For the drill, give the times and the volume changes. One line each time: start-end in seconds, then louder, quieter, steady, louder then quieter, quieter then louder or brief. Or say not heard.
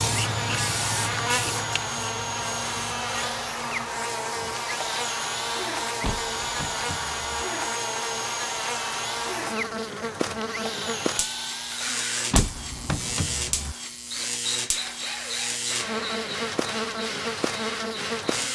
0.1-18.4 steady.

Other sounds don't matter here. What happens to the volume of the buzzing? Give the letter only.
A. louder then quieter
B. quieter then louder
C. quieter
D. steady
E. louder
D.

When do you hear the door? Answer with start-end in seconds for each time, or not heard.
6.0-7.5, 12.3-13.8.